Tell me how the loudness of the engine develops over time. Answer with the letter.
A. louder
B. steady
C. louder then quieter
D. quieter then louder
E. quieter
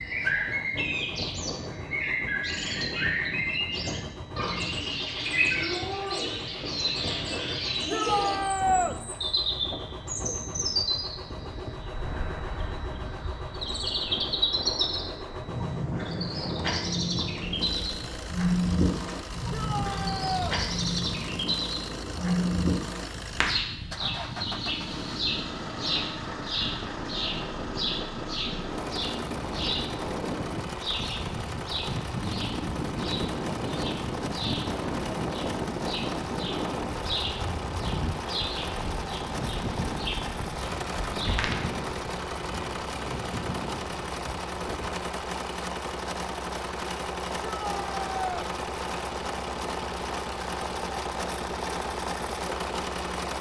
A.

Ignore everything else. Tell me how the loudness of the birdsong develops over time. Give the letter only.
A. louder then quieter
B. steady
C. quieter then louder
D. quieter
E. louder
D.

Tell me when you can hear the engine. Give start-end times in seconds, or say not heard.
0.1-53.3.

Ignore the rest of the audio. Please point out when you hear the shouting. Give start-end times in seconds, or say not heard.
7.9-8.9, 19.5-20.6, 47.4-48.5.